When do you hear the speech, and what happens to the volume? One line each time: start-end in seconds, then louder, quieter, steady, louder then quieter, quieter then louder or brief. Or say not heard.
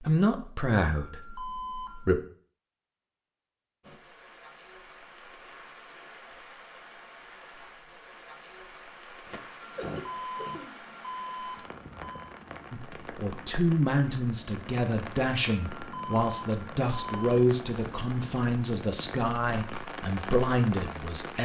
0.0-2.2 brief
12.7-21.4 steady.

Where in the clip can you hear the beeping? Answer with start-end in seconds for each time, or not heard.
0.9-2.1, 9.6-12.3, 15.7-17.4.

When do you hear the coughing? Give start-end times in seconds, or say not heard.
9.2-10.8.